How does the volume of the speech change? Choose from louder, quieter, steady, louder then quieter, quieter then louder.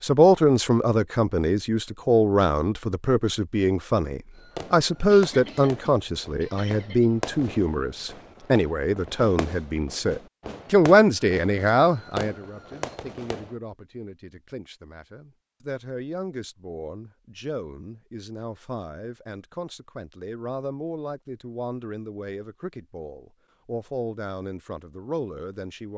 quieter.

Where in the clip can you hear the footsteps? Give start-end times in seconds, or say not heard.
not heard.